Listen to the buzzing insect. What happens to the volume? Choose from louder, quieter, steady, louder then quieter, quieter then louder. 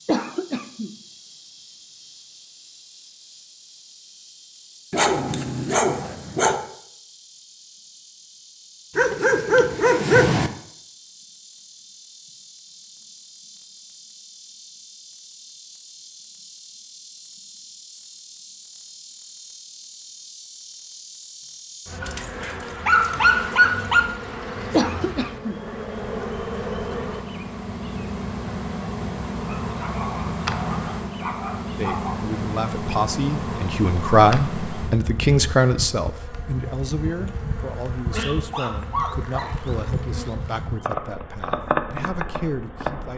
louder.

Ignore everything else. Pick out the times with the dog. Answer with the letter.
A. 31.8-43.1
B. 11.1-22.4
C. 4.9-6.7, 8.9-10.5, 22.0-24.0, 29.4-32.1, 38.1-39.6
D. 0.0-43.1
C.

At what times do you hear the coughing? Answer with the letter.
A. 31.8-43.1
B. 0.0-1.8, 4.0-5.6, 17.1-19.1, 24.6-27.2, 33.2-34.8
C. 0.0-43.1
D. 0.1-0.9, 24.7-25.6
D.